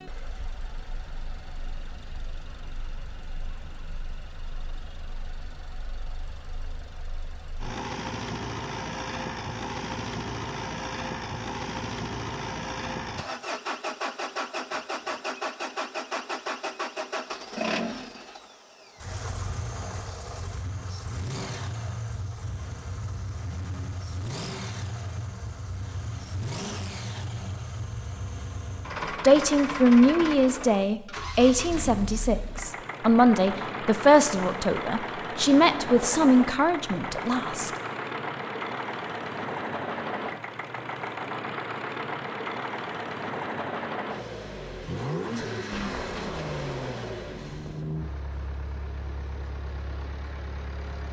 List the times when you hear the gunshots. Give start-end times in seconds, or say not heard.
45.7-47.0.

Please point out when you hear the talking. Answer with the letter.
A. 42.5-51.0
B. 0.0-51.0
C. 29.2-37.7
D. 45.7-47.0
C.